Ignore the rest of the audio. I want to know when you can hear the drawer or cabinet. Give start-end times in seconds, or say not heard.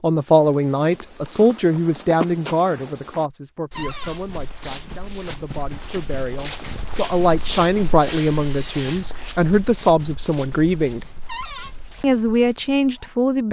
3.8-4.2, 11.2-11.8.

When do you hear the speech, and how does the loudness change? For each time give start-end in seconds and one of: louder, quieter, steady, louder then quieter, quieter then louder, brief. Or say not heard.
0.0-11.1 quieter then louder
12.0-13.4 brief.